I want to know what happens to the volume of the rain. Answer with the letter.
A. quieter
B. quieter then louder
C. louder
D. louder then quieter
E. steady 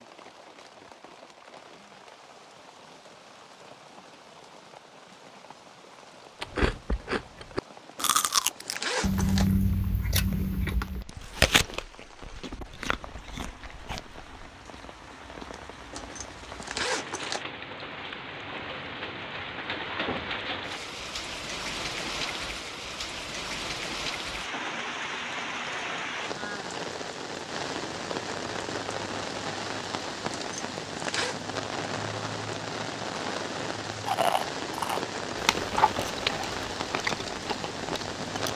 C.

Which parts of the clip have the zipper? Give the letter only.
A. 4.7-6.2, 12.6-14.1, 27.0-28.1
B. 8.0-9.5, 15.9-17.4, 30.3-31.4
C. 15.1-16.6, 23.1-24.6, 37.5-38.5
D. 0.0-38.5
B.